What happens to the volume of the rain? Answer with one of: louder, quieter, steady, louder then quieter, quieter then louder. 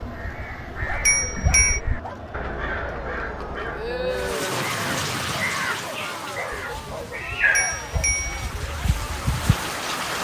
quieter then louder.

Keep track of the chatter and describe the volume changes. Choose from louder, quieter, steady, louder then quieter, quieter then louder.
louder then quieter.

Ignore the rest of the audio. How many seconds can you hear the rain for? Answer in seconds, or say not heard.
6 s.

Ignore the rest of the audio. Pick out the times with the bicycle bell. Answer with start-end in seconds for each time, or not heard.
0.0-1.8, 6.5-8.6.